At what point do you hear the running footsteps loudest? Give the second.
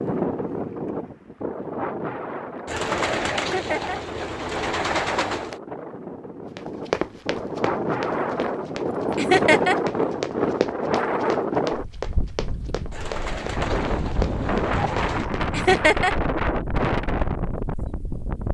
7 s.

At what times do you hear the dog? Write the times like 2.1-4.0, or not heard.
not heard.